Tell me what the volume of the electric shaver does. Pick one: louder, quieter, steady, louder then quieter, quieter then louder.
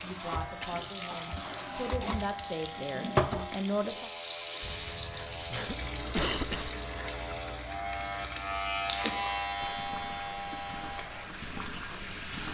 louder.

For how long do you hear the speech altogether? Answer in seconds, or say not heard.
4 s.